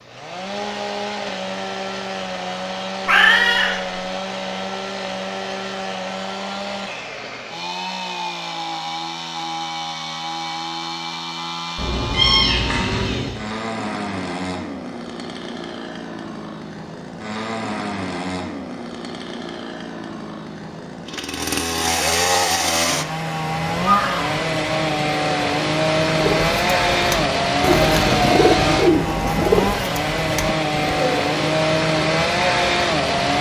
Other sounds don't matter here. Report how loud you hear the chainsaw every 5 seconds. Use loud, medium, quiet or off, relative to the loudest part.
medium, medium, medium, medium, loud, loud, loud.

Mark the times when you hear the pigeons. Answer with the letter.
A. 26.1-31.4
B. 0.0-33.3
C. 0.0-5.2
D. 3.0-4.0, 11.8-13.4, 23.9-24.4
A.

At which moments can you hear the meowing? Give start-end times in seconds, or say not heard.
3.0-4.0, 11.8-13.4, 23.9-24.4.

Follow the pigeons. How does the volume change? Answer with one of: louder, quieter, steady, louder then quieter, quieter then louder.
louder then quieter.